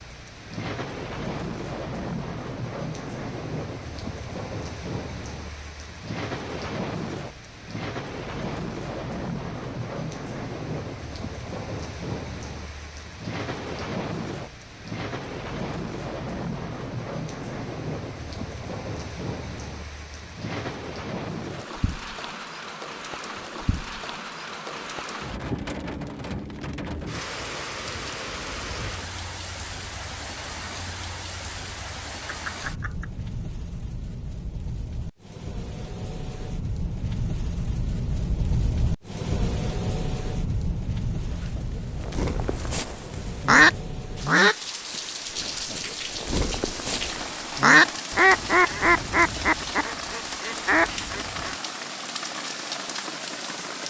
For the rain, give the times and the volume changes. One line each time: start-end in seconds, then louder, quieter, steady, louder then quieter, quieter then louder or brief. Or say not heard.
0.0-53.8 steady.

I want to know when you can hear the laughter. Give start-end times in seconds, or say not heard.
32.2-33.1.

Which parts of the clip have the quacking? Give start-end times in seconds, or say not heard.
41.2-44.5, 45.4-51.5.